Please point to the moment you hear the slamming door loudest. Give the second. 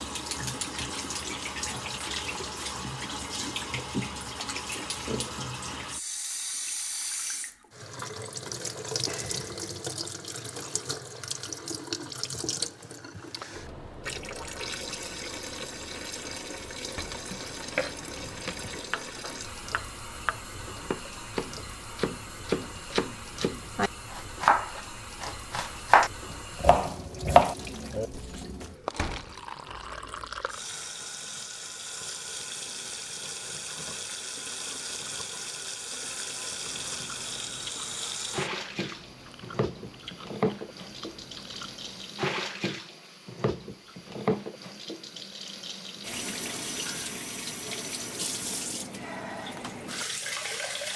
29 s.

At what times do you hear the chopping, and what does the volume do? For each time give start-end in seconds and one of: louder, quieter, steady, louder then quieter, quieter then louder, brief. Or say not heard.
17.3-28.2 louder.